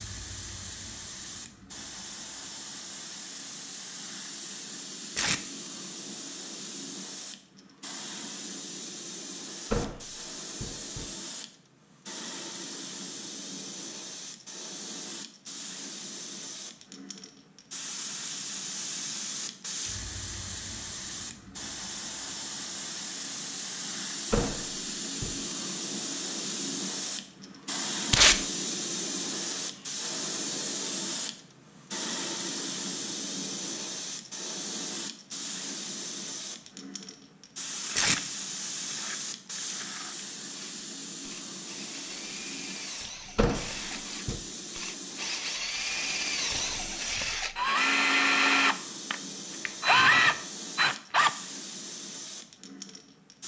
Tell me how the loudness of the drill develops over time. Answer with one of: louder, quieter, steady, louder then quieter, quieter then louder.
louder.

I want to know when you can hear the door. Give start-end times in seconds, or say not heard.
9.7-11.1, 24.3-25.4, 43.4-44.4.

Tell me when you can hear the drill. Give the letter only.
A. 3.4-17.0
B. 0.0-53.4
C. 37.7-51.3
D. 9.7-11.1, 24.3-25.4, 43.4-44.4
C.